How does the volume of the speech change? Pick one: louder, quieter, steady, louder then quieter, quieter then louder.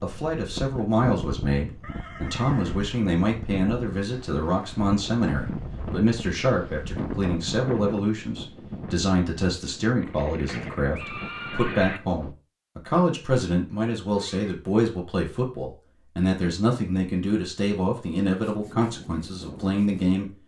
steady.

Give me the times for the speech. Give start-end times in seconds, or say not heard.
0.0-20.2.